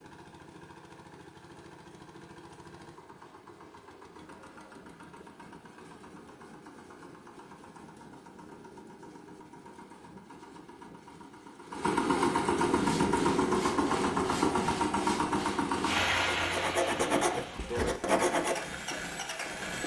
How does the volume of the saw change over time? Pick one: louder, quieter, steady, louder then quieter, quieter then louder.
louder.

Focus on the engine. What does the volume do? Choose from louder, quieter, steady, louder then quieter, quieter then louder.
louder then quieter.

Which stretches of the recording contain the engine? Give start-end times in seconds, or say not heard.
0.0-19.8.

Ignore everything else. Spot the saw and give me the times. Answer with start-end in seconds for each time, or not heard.
12.8-18.6.